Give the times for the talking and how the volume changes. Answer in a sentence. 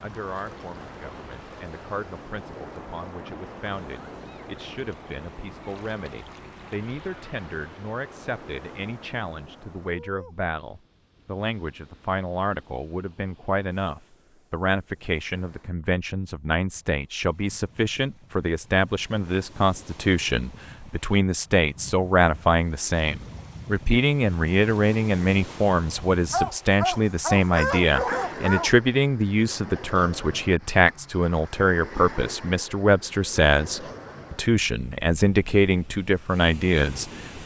The talking can be heard from 0.0 to 37.4 s, getting louder.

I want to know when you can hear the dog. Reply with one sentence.
You can hear the dog from 25.9 to 28.7 s.